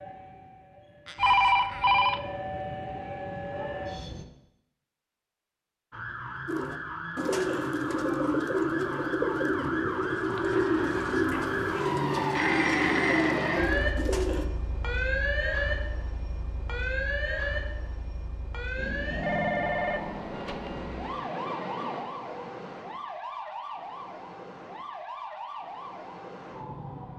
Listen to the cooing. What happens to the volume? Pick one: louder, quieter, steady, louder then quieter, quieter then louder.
steady.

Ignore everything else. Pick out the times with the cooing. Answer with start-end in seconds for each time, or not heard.
6.5-14.4.